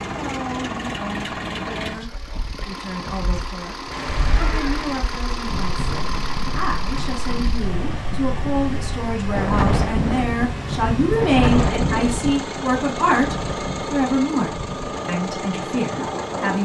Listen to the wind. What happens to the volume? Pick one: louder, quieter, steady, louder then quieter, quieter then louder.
louder then quieter.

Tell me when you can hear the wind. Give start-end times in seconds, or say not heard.
4.0-16.5.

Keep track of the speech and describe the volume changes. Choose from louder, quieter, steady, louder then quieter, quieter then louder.
louder.